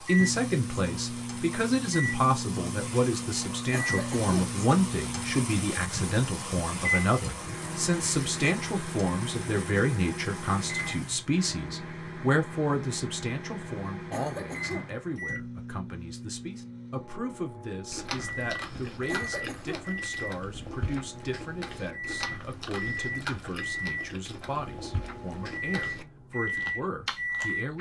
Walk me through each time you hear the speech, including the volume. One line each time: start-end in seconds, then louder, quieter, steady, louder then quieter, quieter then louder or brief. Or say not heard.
0.0-27.7 quieter.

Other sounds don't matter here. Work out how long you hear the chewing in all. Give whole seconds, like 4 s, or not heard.
10 s.